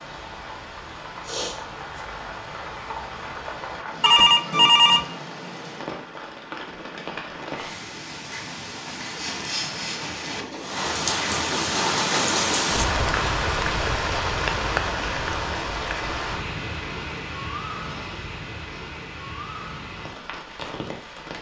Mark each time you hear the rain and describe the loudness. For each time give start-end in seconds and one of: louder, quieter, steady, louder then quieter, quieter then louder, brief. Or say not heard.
0.0-21.3 louder then quieter.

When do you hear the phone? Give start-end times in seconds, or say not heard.
4.0-5.0.